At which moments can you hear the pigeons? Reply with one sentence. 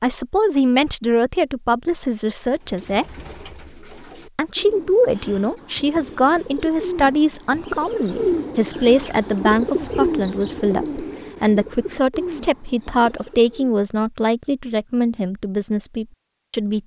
The pigeons can be heard from 2.5 to 13.8 s.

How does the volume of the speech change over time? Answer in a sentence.
The loudness of the speech stays about the same.